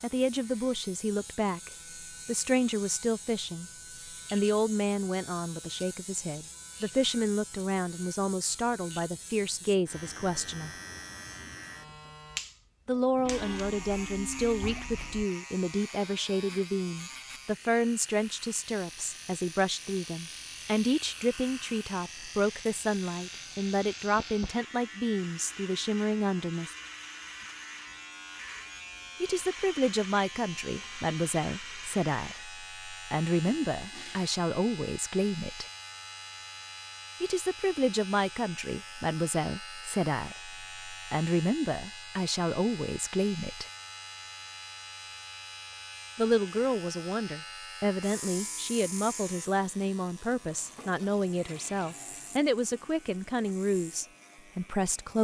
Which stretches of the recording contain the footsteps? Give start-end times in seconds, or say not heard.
not heard.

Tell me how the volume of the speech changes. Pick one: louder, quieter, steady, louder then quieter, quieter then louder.
steady.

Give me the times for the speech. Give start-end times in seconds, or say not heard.
0.0-3.6, 4.3-10.7, 12.8-26.8, 29.2-35.6, 37.2-43.6, 46.1-55.2.